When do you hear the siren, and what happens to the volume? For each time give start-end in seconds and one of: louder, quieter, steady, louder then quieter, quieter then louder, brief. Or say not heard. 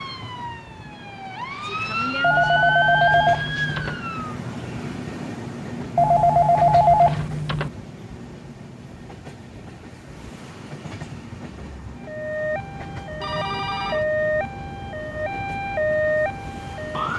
0.0-4.3 louder then quieter
12.0-17.1 louder.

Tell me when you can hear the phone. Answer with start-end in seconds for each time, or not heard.
2.2-4.0, 6.0-7.7, 13.2-14.1.